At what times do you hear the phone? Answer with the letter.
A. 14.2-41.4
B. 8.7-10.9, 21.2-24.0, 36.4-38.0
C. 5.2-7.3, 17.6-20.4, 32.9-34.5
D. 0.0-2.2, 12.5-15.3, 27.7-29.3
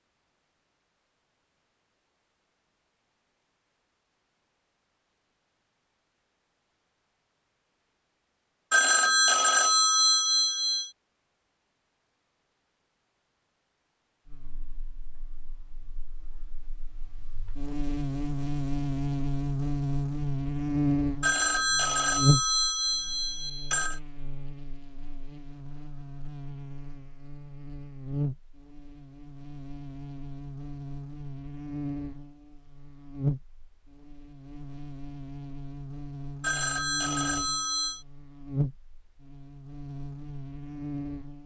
B.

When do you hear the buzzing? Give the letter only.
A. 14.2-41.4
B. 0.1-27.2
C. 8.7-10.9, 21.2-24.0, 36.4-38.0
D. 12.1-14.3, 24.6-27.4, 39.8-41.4
A.